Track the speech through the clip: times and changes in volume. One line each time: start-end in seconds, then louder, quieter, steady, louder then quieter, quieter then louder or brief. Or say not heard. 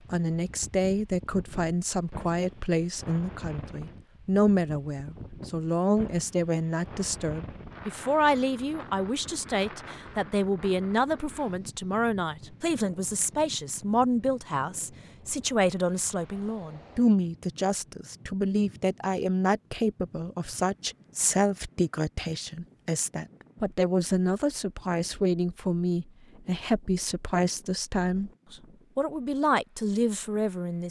0.1-30.8 steady.